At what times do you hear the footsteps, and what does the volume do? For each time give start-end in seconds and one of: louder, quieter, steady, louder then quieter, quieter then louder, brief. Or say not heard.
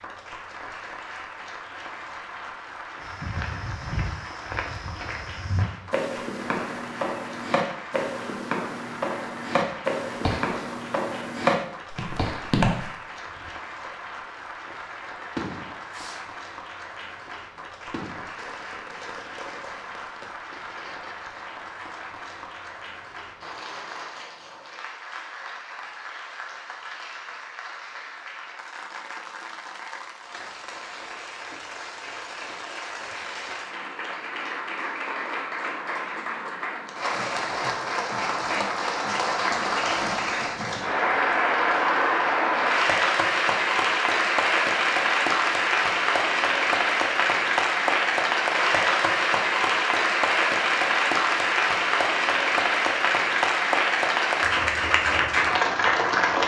3.0-12.8 louder.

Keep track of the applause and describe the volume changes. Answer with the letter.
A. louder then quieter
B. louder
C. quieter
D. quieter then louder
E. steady
B.